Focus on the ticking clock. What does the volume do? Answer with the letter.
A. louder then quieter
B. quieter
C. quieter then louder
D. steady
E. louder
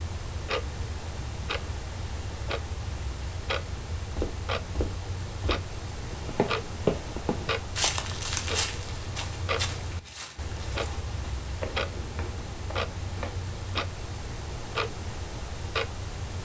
D.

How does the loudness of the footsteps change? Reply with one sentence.
The volume of the footsteps goes up, then down.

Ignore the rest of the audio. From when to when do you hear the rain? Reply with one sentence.
You can't hear the rain here.